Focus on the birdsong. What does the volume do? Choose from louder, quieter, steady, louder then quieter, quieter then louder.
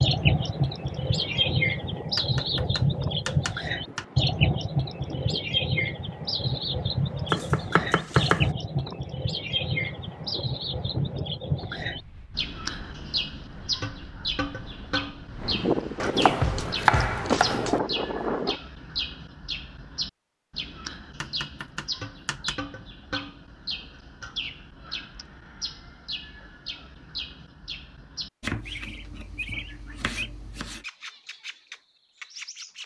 quieter.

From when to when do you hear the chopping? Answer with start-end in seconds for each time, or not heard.
2.1-4.0, 7.3-8.5, 16.0-17.8, 21.2-22.6, 28.4-30.9.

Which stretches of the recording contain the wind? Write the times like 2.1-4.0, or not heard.
0.0-18.6.